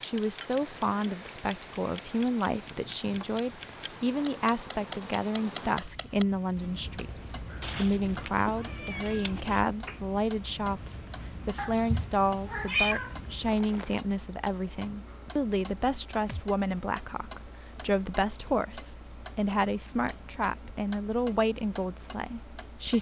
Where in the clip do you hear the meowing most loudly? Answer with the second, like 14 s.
13 s.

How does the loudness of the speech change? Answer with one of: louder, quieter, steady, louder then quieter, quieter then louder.
steady.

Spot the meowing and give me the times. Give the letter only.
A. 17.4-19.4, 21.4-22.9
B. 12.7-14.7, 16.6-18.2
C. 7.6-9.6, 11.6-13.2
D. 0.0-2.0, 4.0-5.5
C.